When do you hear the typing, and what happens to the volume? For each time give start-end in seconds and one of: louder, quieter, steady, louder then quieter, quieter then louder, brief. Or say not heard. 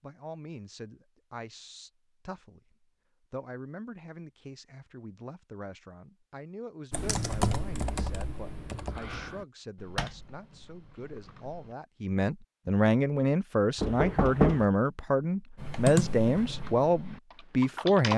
6.9-11.8 quieter
15.6-18.1 brief.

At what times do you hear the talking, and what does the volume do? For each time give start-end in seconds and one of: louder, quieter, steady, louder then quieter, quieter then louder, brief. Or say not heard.
0.0-18.1 louder.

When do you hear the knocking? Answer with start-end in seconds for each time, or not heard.
13.8-14.7.